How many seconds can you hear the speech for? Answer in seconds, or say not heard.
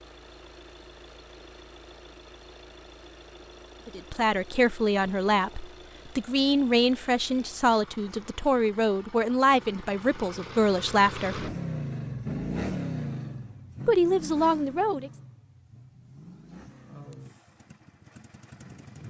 9 s.